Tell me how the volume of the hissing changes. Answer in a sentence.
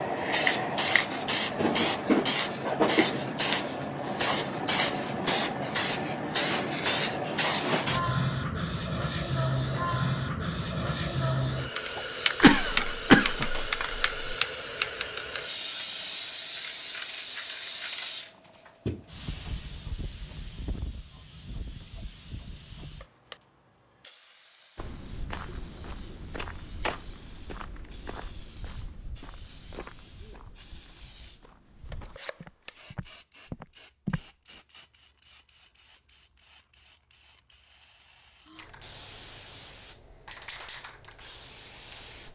The loudness of the hissing goes down.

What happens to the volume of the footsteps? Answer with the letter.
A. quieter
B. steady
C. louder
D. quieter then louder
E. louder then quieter
D.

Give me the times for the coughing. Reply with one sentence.
You can hear the coughing from 12.4 to 14.3 s.